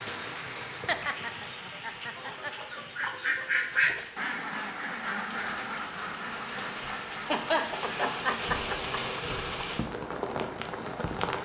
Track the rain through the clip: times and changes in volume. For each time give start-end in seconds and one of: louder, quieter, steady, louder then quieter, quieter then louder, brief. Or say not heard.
0.0-11.4 quieter then louder.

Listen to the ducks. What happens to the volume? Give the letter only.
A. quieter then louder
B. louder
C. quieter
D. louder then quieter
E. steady
D.